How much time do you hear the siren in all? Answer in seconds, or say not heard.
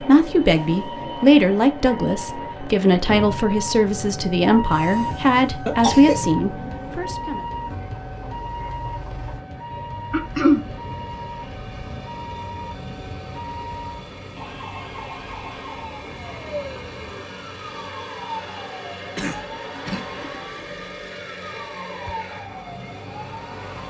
24 s.